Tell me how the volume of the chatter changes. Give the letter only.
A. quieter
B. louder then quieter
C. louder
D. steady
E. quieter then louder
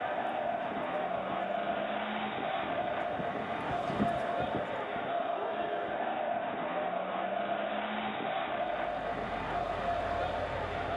D.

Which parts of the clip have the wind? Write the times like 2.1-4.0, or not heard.
0.0-6.0.